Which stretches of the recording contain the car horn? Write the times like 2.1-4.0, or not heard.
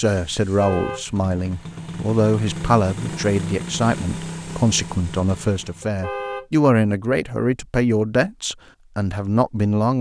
0.6-1.1, 5.8-6.5.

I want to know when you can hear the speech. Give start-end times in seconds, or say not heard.
0.0-9.9.